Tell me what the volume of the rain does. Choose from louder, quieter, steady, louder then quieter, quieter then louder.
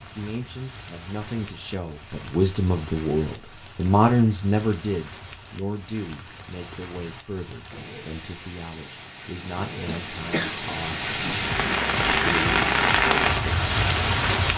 louder.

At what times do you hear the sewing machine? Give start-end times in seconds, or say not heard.
not heard.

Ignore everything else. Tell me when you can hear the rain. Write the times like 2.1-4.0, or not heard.
0.0-14.5.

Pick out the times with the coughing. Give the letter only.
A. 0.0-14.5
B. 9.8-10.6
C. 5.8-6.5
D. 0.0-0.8
B.